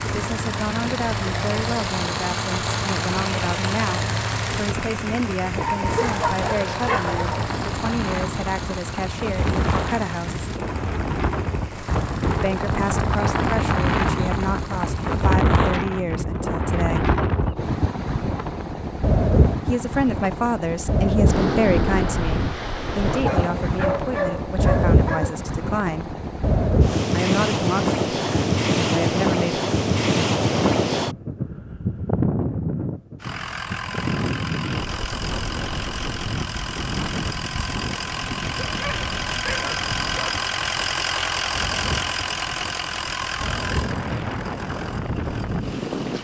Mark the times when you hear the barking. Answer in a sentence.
The barking can be heard from 5.6 to 7.5 s, from 23.1 to 25.4 s and from 38.5 to 40.5 s.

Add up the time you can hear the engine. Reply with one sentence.
The engine can be heard for 28 seconds in total.